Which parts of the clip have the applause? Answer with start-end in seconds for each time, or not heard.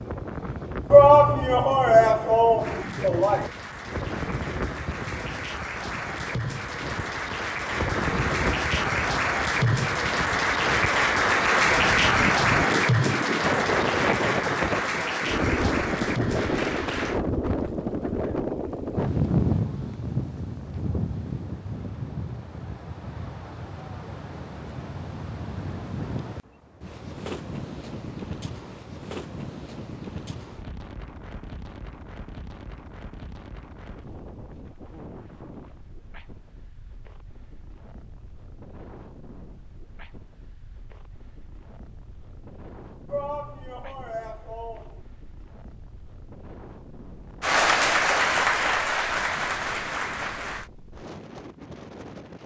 2.5-17.2, 47.4-50.7.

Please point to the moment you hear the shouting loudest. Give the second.
1 s.